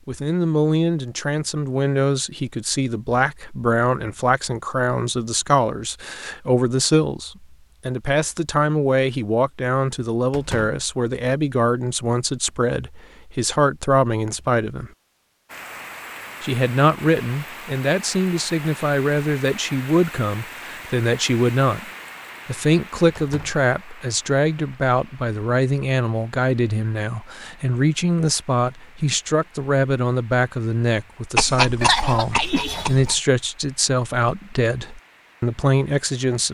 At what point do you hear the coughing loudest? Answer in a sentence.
The loudest moment of the coughing is at 32 seconds.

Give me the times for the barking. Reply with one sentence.
The barking can't be heard in this clip.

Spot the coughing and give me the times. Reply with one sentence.
You can hear the coughing from 31.4 to 33.2 s.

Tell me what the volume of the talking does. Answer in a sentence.
The volume of the talking stays about the same.